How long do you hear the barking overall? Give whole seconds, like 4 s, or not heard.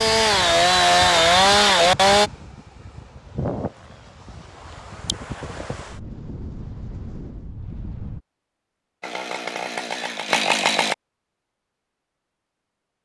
not heard.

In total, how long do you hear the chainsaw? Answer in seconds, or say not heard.
4 s.